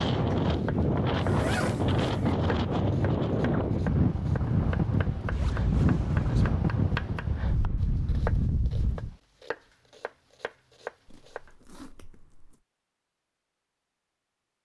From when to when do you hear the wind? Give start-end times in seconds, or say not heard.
0.0-9.2.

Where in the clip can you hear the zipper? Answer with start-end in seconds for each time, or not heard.
1.1-2.4, 5.3-6.5, 11.1-12.6.